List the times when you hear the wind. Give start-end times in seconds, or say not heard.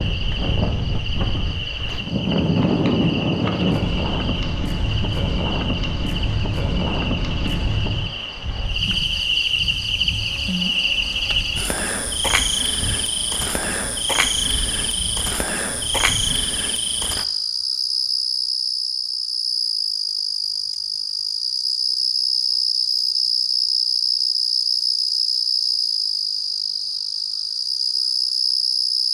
0.0-16.7.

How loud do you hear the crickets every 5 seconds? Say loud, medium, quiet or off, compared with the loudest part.
medium, medium, loud, loud, loud, loud.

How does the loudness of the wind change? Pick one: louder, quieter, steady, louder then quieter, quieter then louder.
quieter.